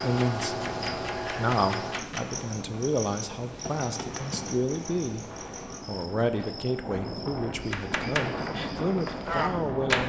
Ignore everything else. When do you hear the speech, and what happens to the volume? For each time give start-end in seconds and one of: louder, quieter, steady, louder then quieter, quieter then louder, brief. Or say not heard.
0.0-10.0 steady.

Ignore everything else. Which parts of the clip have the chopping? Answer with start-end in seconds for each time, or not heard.
0.0-2.5, 7.7-10.0.